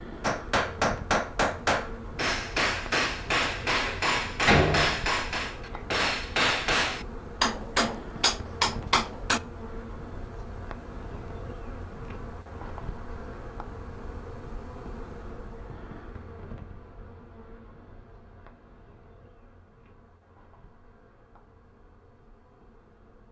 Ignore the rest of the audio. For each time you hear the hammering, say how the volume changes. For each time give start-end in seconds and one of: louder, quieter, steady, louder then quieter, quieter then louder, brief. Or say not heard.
0.2-9.4 steady.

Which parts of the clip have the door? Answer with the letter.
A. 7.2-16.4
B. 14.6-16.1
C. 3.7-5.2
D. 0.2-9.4
C.